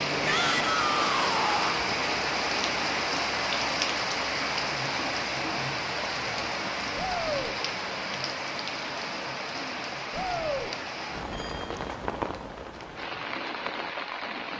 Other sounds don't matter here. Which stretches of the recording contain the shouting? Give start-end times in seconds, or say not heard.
0.2-1.9, 7.0-7.5, 10.1-10.7.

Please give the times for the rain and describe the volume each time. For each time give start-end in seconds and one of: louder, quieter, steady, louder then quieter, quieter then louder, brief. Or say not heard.
0.0-14.5 quieter.